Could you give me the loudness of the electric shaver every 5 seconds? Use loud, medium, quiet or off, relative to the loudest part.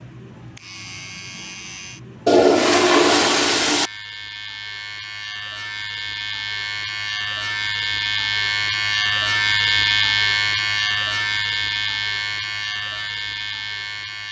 quiet, loud, loud.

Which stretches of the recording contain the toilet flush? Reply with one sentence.
The toilet flush can be heard from 2.2 to 3.9 s.